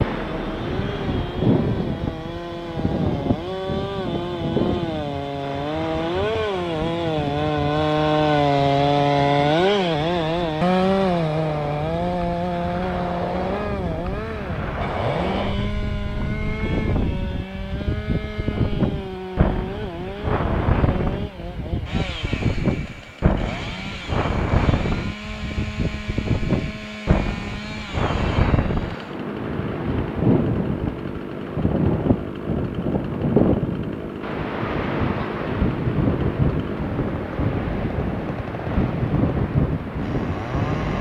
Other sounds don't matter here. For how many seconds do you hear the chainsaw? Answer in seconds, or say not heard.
41 s.